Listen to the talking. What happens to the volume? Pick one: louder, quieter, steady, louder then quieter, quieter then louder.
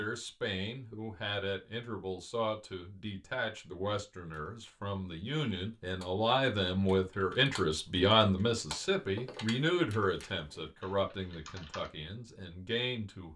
louder then quieter.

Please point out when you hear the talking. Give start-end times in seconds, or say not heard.
0.0-13.3.